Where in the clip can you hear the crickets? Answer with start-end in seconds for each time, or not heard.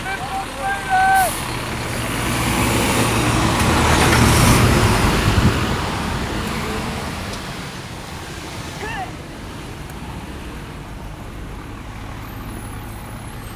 not heard.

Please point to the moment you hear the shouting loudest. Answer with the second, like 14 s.
1 s.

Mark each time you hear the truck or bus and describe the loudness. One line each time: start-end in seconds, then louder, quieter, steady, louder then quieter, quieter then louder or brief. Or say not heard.
0.0-13.5 louder then quieter.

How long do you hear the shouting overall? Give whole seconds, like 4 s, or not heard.
2 s.